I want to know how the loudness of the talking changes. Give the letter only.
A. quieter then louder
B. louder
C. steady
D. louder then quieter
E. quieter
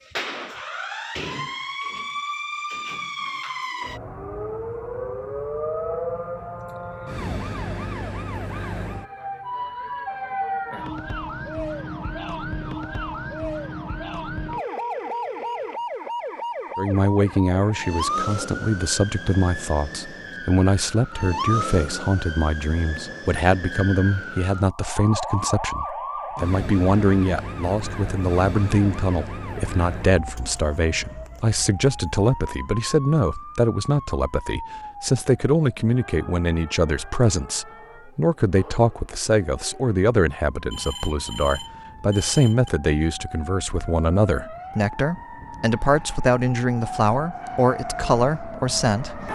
C.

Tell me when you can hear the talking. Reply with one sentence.
You can hear the talking from 16.8 to 49.3 s.